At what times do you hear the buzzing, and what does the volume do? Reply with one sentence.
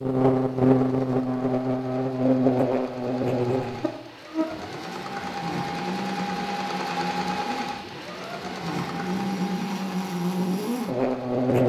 You can hear the buzzing from 0.0 to 11.6 s, getting quieter then louder.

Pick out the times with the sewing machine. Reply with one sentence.
You can hear the sewing machine from 0.0 to 11.6 s.